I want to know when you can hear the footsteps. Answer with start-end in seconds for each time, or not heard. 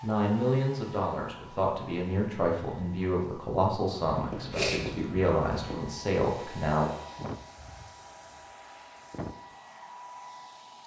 not heard.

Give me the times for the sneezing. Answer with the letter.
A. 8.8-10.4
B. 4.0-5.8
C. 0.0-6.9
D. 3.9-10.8
B.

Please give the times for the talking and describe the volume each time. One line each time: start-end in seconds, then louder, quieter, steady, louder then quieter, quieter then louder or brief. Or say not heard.
0.0-6.9 steady.